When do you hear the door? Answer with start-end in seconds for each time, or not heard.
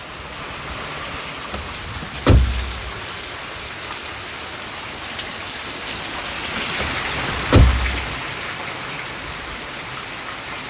1.5-3.0, 6.8-8.0.